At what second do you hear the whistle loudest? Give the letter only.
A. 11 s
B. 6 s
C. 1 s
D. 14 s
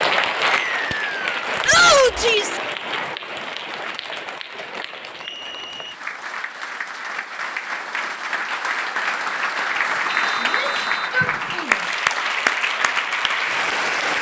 C.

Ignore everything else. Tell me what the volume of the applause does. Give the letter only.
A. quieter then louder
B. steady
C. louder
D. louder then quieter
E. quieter
A.